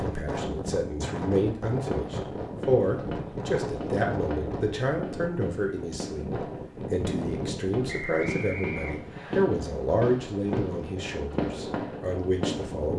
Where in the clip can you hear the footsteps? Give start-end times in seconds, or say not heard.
not heard.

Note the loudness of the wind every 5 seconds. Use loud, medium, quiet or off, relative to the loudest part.
loud, loud, medium.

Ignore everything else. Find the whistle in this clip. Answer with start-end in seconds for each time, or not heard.
7.8-9.4.